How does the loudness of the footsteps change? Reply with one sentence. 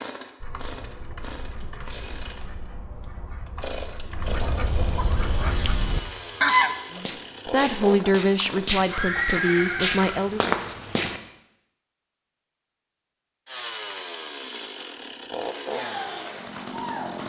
The loudness of the footsteps goes up.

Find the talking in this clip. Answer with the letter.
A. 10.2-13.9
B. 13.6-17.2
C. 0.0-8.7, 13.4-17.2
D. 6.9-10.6
D.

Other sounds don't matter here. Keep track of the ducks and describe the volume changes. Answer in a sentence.
The volume of the ducks goes up.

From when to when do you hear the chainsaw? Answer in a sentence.
The chainsaw can be heard from 0.0 to 8.7 s and from 13.4 to 17.2 s.